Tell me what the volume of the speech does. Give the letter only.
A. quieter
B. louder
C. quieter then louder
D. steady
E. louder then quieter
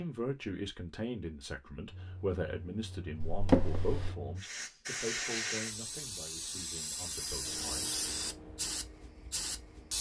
A.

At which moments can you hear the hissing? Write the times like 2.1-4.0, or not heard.
4.3-9.9.